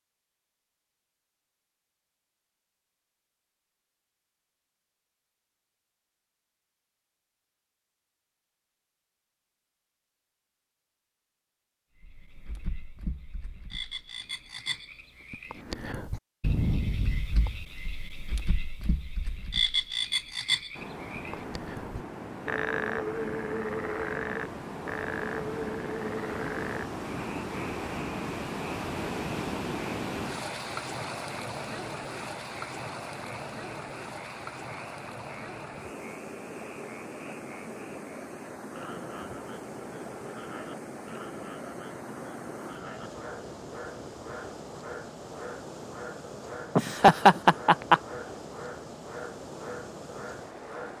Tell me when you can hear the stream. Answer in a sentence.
The stream can be heard from 20.7 to 50.9 s.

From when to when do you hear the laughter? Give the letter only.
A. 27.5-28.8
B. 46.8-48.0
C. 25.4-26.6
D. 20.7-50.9
B.